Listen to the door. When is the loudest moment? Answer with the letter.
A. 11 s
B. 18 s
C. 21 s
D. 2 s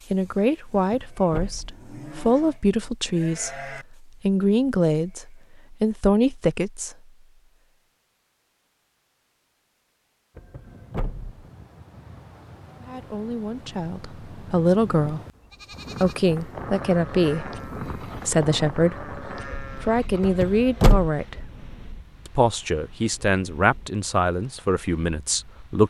C.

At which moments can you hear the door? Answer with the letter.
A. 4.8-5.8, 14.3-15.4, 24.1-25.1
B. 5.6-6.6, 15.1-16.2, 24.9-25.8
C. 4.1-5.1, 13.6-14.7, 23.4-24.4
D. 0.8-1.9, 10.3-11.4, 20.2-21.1
D.